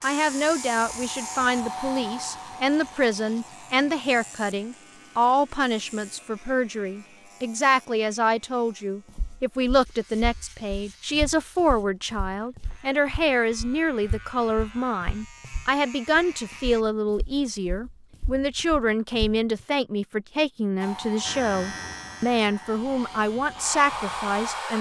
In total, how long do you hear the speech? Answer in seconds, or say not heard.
25 s.